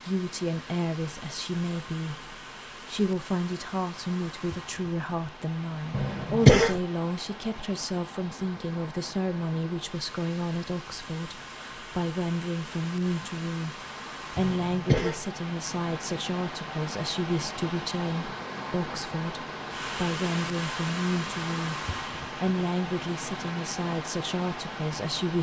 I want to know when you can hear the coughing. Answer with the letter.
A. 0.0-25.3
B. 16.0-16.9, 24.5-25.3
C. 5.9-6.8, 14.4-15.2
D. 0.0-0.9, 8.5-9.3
C.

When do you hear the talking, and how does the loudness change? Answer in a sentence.
You can hear the talking from 0.0 to 25.3 s, at a steady volume.